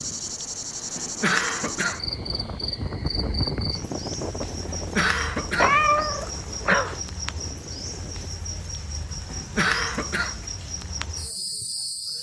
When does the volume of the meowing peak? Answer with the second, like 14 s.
6 s.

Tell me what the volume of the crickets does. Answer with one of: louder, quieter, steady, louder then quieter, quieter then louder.
steady.